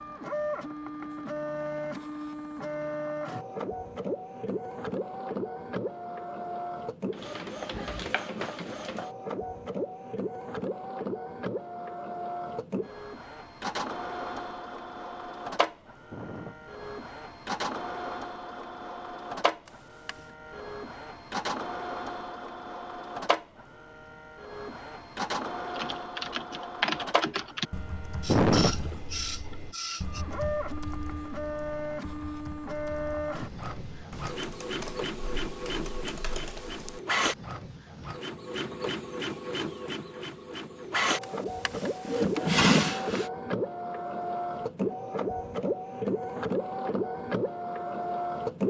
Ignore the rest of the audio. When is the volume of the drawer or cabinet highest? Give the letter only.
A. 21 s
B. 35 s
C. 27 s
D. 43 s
D.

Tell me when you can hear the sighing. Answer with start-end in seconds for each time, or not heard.
16.1-16.8, 28.2-29.0.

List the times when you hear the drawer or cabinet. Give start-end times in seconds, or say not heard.
19.6-20.4, 41.2-43.3.